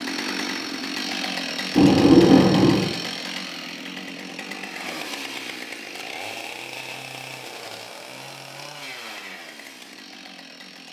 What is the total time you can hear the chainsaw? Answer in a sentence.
You can hear the chainsaw for 11 seconds altogether.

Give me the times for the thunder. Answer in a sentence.
You can hear the thunder from 1.8 to 2.9 s.